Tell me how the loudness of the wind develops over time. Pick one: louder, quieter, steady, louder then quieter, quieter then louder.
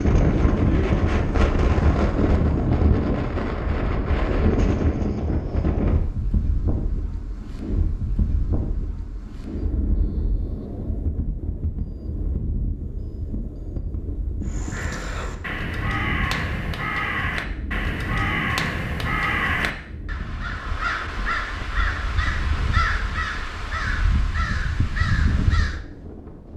quieter.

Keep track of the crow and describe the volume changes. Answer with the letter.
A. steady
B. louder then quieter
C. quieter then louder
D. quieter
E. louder
A.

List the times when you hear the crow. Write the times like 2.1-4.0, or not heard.
14.4-25.8.